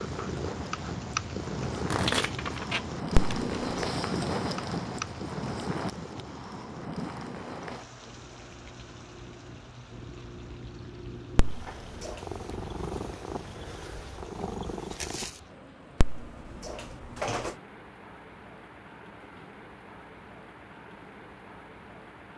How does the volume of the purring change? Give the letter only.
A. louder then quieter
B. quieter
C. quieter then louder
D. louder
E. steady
C.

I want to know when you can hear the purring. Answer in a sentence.
You can hear the purring from 0.0 to 15.5 s.